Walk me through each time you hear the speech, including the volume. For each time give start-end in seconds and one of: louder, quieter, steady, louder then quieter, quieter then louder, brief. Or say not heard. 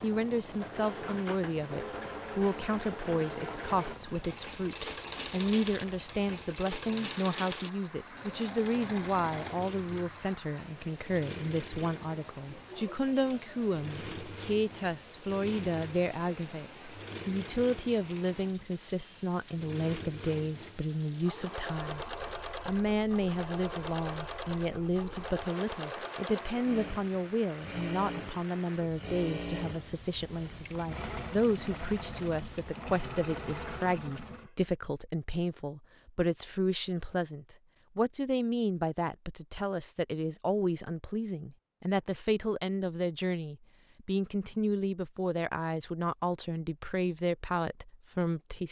0.0-48.6 steady.